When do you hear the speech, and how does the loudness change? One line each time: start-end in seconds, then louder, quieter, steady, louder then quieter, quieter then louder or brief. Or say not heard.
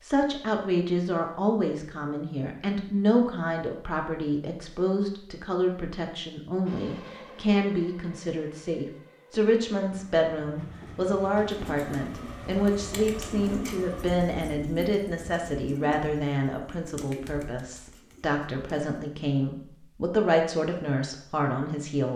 0.0-22.1 steady.